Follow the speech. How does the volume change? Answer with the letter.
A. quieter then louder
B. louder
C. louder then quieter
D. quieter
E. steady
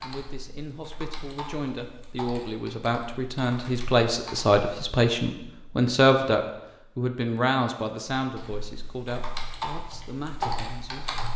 C.